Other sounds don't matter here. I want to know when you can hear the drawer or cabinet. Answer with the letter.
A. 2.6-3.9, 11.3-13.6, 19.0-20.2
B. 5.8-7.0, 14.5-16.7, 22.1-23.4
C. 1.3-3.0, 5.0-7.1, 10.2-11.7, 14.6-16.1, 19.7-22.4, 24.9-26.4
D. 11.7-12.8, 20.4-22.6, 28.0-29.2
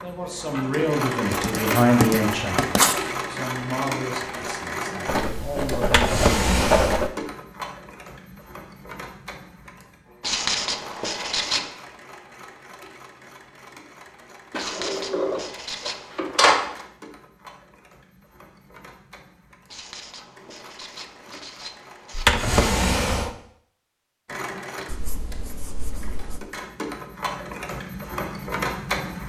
B.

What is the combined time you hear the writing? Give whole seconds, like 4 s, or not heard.
11 s.